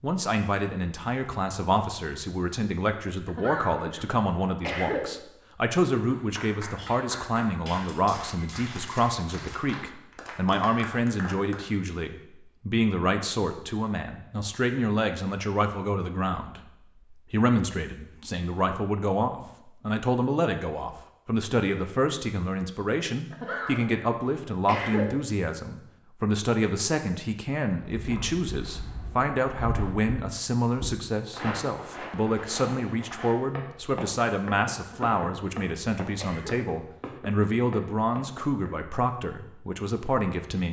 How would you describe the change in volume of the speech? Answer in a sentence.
The volume of the speech stays about the same.